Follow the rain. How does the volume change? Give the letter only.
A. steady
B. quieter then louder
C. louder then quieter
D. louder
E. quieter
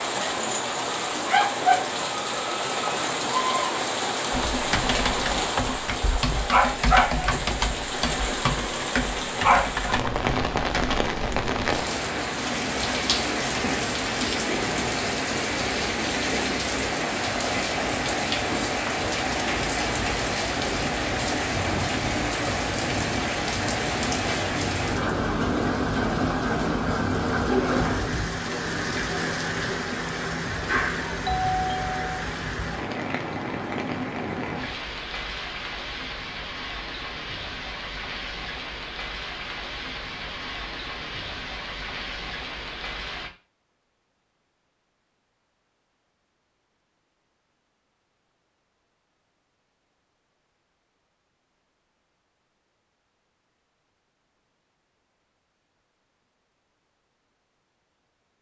E.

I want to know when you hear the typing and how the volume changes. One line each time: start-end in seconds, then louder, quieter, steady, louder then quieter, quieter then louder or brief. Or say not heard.
4.3-11.0 steady.